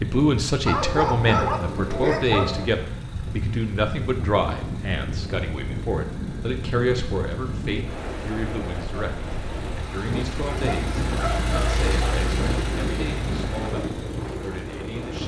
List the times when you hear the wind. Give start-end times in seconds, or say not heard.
0.0-15.2.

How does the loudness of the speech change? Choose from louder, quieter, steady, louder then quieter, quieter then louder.
quieter.